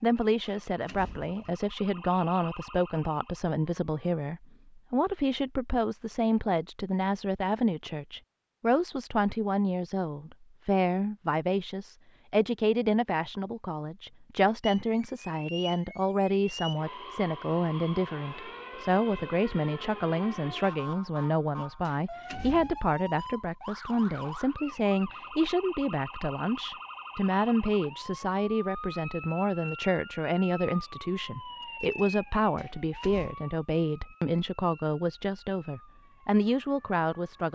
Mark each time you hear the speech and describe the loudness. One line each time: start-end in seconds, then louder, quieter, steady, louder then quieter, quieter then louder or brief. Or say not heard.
0.0-37.4 steady.